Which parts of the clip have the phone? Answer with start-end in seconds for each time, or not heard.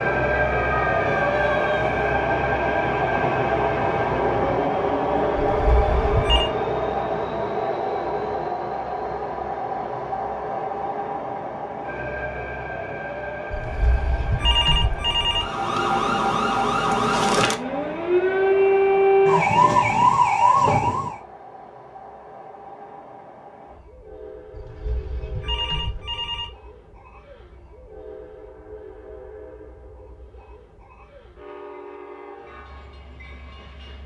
5.3-6.5, 13.5-15.4, 24.5-26.5.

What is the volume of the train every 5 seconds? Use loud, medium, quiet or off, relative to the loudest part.
loud, loud, medium, quiet, quiet, quiet, quiet.